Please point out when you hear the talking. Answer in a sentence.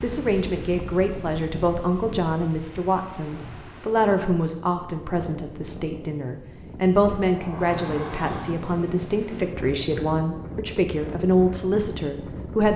The talking can be heard from 0.0 to 12.7 s.